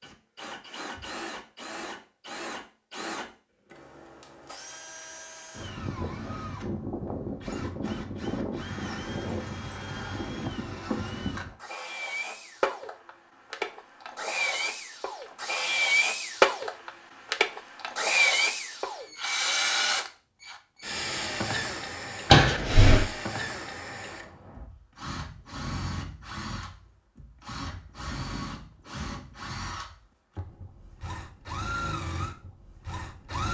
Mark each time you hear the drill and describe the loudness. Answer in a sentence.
The drill can be heard from 0.0 to 33.4 s, getting louder then quieter.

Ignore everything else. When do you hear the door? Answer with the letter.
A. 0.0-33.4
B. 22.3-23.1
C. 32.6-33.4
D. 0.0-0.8
B.